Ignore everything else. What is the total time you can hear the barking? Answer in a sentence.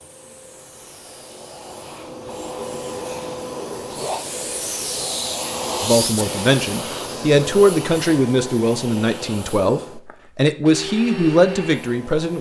You can't hear the barking here.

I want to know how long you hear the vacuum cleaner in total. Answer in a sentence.
You can hear the vacuum cleaner for 12 seconds altogether.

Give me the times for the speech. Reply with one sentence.
You can hear the speech from 5.8 to 12.3 s.